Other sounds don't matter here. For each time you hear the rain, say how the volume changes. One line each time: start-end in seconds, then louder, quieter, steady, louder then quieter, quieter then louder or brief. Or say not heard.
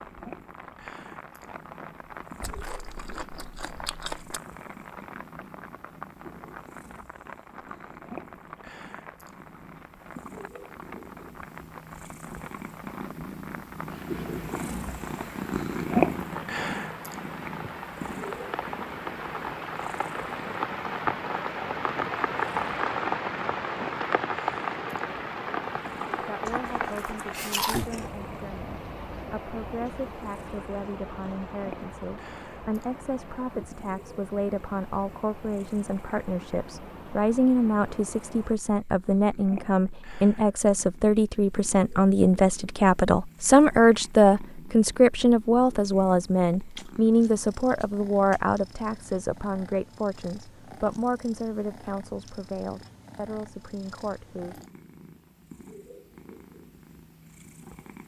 0.0-38.6 louder then quieter.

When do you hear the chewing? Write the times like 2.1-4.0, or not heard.
2.4-4.4, 26.4-28.1, 46.7-48.4.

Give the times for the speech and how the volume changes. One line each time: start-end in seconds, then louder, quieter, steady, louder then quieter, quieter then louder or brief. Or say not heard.
26.2-54.6 louder then quieter.